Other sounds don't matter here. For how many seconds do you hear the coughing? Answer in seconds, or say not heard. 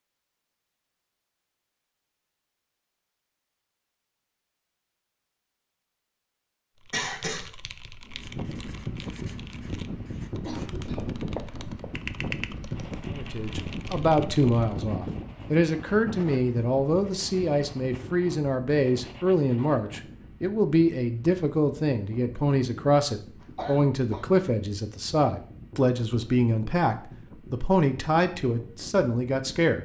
2 s.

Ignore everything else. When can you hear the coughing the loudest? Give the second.
7 s.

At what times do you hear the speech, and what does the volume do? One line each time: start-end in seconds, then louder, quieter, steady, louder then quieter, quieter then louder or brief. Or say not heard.
13.1-29.7 steady.